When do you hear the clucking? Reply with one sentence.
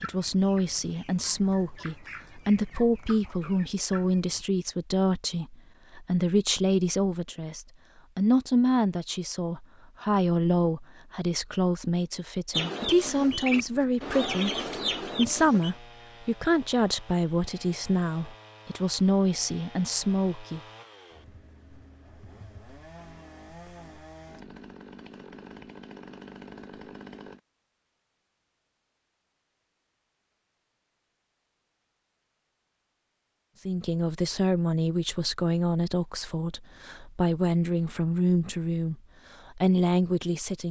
The clucking can be heard from 0.0 to 4.5 s and from 12.5 to 15.7 s.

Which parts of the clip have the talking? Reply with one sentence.
The talking can be heard from 0.0 to 20.6 s and from 33.6 to 40.6 s.